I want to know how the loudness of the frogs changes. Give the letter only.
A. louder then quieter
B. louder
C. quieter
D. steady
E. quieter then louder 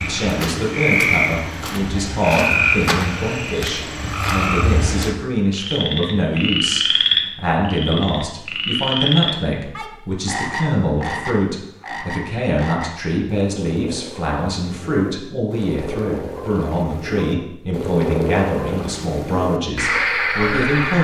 E.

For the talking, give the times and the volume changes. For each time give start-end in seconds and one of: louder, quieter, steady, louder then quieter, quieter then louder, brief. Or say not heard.
0.0-20.9 steady.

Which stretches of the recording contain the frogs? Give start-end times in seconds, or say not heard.
0.0-20.9.